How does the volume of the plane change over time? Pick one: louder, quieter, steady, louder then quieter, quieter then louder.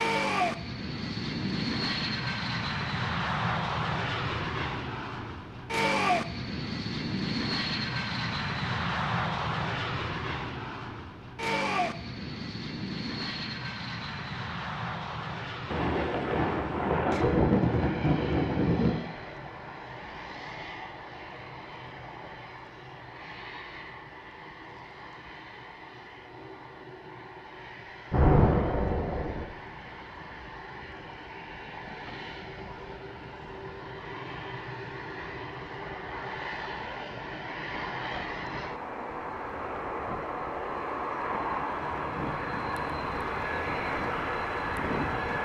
quieter then louder.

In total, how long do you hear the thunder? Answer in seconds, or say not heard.
5 s.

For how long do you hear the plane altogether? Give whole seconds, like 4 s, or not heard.
45 s.